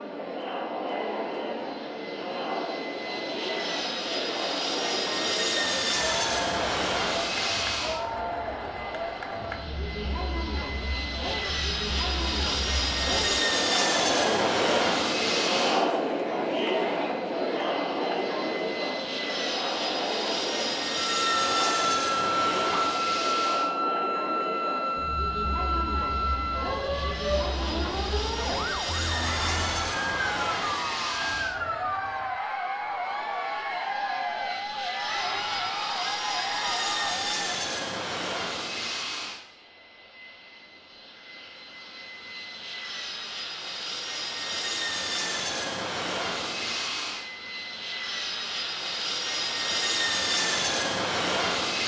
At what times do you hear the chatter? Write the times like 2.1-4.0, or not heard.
0.0-37.2.